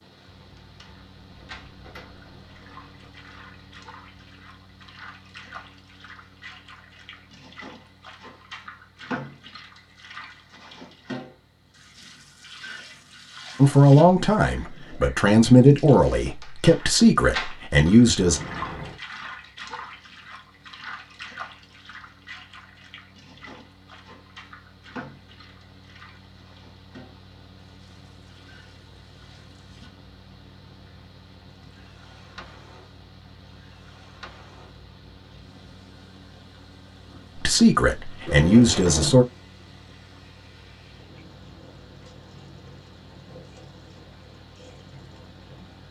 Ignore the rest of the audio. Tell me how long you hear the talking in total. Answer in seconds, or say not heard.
7 s.